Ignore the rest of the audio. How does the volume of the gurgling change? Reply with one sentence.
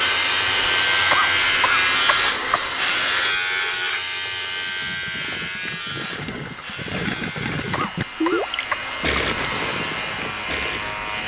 The volume of the gurgling goes up, then down.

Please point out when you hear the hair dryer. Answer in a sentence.
The hair dryer can be heard from 0.0 to 3.4 s and from 6.0 to 11.2 s.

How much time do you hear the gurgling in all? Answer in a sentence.
The gurgling can be heard for 7 seconds in total.